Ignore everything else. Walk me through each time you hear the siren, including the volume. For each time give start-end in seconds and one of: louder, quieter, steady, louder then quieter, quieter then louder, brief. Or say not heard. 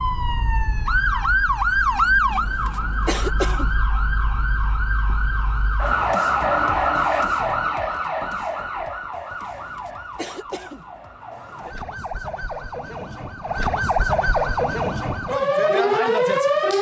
0.0-16.7 quieter then louder.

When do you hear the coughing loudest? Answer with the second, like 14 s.
3 s.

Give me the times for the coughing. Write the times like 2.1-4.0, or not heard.
2.3-3.8, 9.6-10.9.